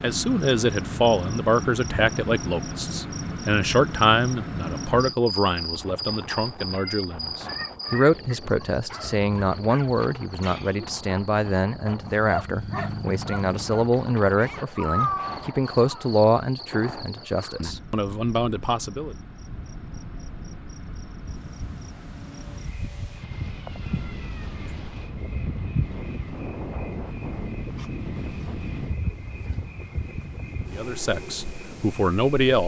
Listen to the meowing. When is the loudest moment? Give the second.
15 s.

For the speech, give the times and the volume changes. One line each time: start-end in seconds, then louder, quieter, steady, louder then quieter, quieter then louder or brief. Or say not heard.
0.0-19.1 steady
30.7-32.6 brief.